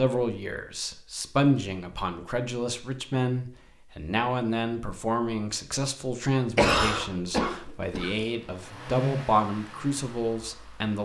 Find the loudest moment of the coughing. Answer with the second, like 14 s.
7 s.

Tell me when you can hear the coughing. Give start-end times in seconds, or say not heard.
6.5-8.1.